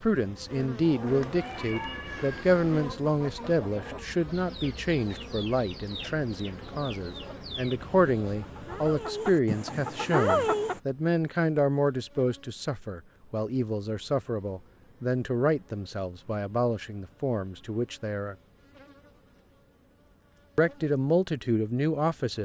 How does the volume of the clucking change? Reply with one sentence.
The loudness of the clucking goes up.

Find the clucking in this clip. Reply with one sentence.
You can hear the clucking from 0.8 to 10.8 s.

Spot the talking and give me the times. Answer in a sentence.
The talking can be heard from 0.0 to 18.4 s and from 20.6 to 22.4 s.